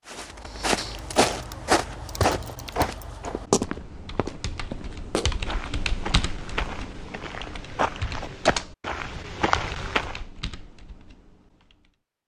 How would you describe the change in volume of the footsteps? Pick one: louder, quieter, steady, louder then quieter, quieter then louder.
quieter then louder.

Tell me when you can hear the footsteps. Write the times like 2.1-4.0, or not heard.
0.1-10.2.